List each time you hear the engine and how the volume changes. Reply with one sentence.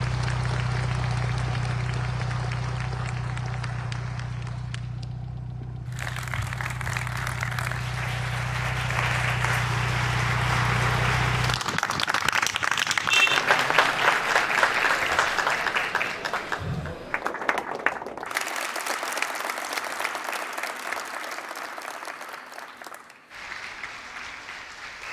The engine can be heard from 0.0 to 11.7 s, getting quieter then louder.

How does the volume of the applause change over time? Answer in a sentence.
The volume of the applause goes up, then down.